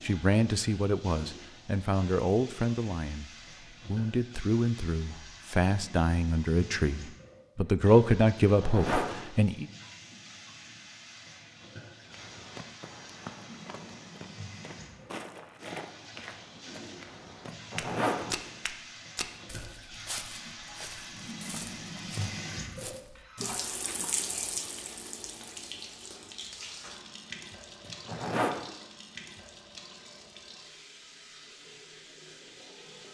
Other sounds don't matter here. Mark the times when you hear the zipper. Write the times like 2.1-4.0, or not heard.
8.4-9.2, 17.4-18.4, 27.9-28.6.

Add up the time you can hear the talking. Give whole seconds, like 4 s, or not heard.
10 s.